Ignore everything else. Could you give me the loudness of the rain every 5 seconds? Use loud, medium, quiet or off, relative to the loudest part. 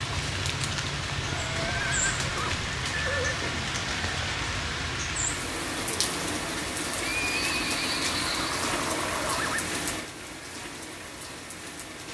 loud, loud, medium.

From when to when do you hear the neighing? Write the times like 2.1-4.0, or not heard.
1.2-3.4, 7.0-9.7.